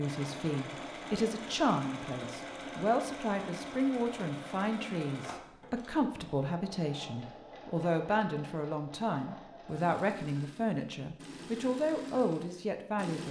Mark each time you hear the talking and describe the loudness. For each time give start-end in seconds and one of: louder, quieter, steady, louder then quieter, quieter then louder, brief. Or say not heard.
0.0-13.2 steady.